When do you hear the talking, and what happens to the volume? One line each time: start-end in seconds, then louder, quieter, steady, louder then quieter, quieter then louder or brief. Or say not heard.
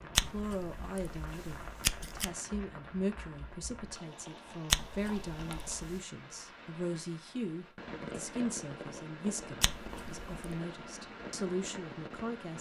0.0-12.5 steady.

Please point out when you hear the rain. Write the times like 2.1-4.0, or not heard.
0.0-12.5.